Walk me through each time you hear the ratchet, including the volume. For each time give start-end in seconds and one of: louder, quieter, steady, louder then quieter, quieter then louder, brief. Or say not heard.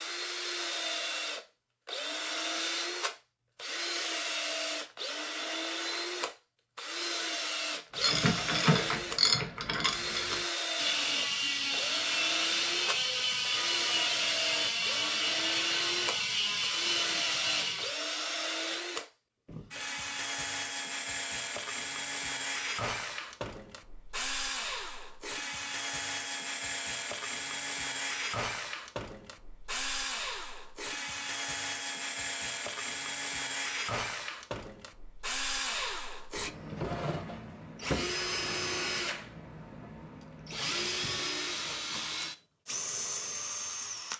8.0-17.9 steady.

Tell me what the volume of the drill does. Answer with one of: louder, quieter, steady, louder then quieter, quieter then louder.
steady.